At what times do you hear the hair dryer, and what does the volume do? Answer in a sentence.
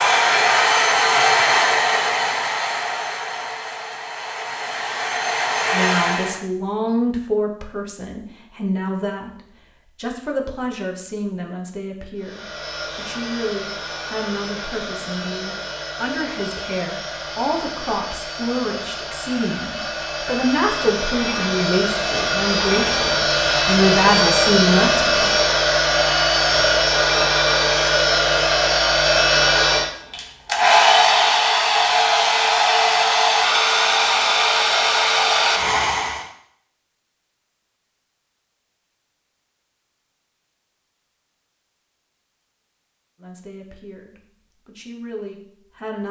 The hair dryer can be heard from 0.0 to 6.4 s, getting quieter then louder; and from 12.2 to 36.2 s, getting louder.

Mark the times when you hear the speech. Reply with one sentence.
The speech can be heard from 5.7 to 25.3 s and from 43.2 to 46.0 s.